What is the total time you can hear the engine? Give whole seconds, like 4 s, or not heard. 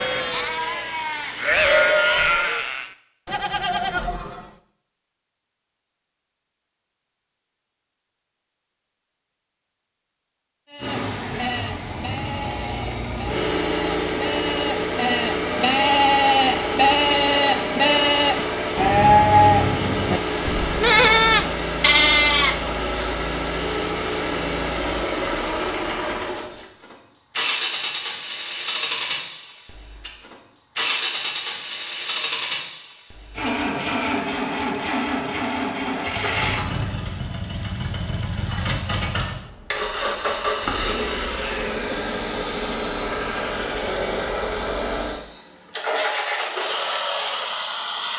37 s.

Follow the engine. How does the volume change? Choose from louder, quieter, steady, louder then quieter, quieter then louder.
steady.